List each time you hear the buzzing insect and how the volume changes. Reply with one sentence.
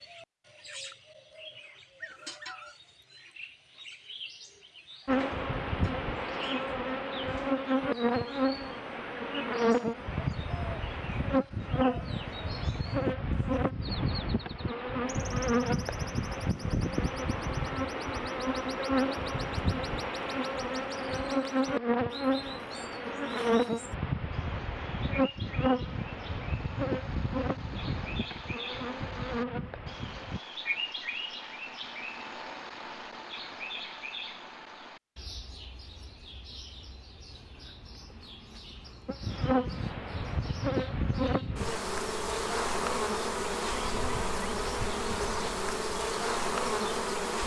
The buzzing insect can be heard from 5.0 to 30.4 s, at a steady volume; and from 39.0 to 47.4 s, at a steady volume.